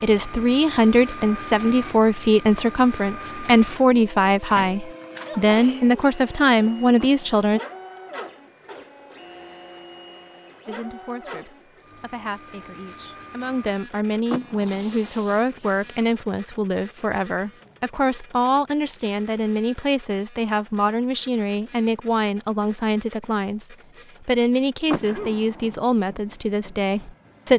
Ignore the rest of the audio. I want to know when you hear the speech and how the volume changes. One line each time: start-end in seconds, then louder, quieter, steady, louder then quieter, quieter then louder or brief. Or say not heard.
0.0-7.6 steady
10.7-27.5 louder.